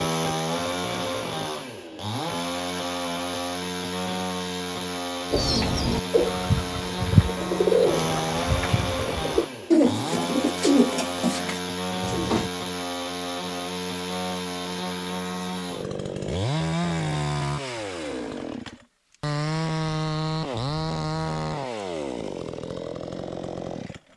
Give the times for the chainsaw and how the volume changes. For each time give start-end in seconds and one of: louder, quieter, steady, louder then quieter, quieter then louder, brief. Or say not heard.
0.0-24.0 steady.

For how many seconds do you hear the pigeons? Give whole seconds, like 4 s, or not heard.
7 s.